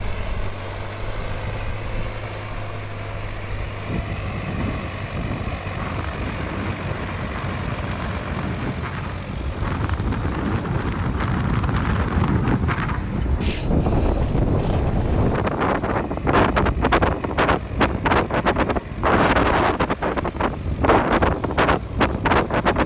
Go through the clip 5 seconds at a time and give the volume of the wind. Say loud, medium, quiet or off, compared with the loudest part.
quiet, medium, loud, loud, loud.